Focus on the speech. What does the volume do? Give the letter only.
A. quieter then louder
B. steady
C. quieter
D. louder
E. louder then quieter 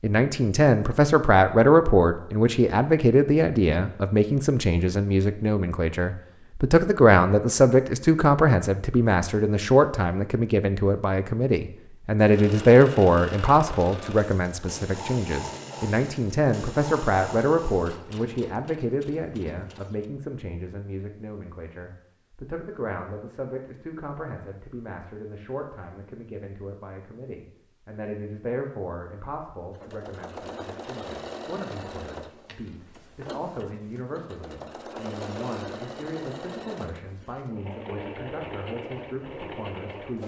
C.